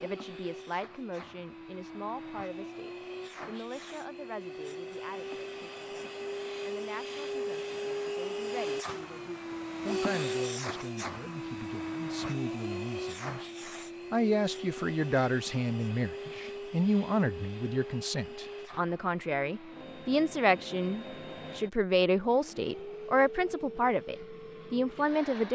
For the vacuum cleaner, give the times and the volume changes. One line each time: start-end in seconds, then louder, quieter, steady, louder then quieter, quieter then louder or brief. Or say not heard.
0.0-25.5 louder then quieter.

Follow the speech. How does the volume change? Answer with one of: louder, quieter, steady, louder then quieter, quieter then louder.
louder.